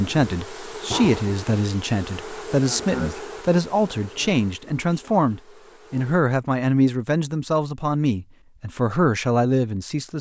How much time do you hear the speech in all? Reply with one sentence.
You can hear the speech for 10 seconds altogether.